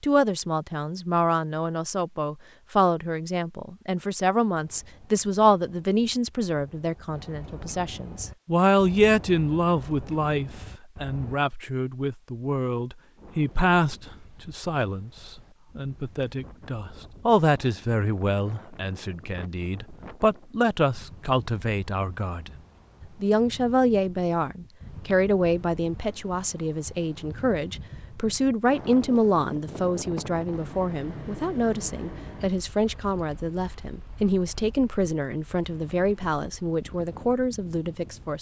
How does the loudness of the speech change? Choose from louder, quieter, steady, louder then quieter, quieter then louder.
steady.